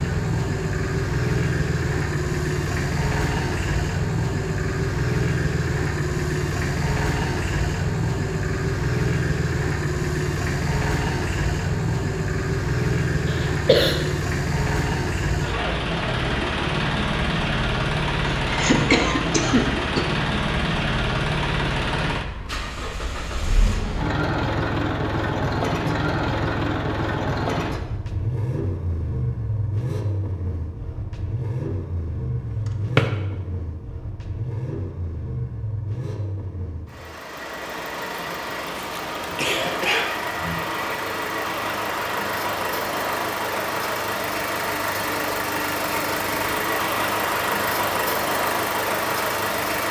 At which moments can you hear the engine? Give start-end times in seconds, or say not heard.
0.0-49.8.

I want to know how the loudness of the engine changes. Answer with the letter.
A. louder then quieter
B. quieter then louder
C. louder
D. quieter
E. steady
B.